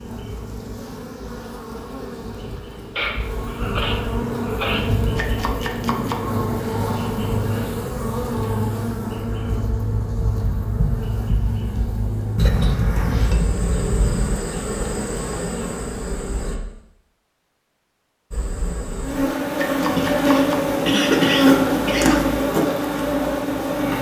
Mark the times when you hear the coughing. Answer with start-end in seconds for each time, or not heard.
3.0-4.9, 12.3-14.3, 19.9-22.2.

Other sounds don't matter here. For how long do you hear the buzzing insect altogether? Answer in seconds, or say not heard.
22 s.